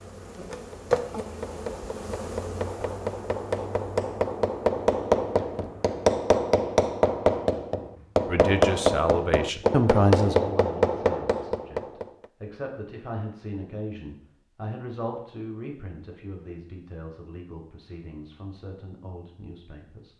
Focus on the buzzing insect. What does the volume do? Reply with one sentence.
The loudness of the buzzing insect goes down.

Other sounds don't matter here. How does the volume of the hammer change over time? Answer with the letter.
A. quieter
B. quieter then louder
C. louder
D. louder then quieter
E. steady
C.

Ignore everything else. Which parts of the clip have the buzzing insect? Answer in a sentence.
You can hear the buzzing insect from 0.0 to 6.0 s.